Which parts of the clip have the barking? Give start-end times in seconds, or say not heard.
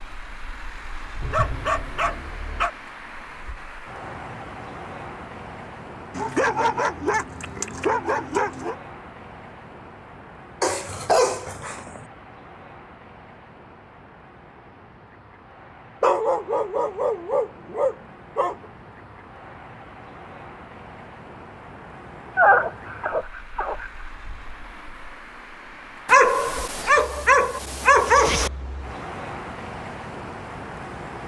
1.2-2.7, 6.1-8.8, 10.6-12.1, 16.0-18.6, 22.4-23.9, 26.1-28.5.